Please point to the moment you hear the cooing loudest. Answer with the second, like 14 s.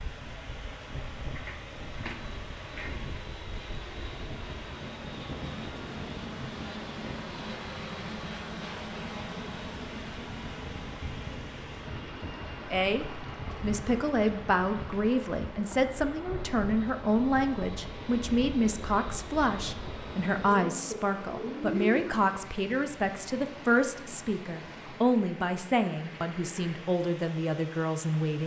22 s.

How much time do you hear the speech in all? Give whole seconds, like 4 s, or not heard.
16 s.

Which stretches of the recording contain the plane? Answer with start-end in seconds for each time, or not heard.
0.0-20.6.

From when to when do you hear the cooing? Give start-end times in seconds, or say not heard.
1.4-3.2, 20.5-22.1.